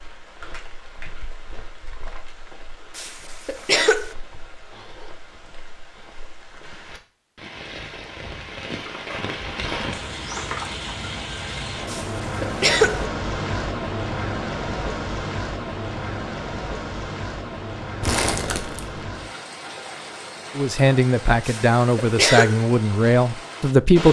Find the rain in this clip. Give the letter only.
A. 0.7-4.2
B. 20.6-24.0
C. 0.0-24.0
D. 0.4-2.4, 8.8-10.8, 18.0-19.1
C.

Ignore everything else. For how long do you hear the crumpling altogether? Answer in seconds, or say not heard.
5 s.